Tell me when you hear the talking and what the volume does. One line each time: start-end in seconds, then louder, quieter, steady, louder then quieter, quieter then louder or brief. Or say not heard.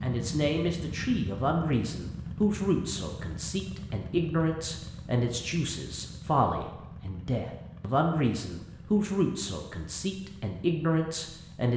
0.0-11.7 steady.